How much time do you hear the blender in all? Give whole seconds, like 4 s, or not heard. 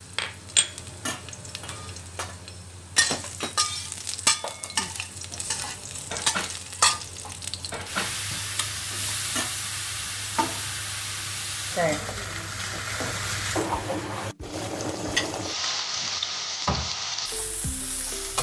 not heard.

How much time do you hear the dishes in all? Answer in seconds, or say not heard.
9 s.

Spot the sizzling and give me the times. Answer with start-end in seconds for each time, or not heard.
0.0-18.3.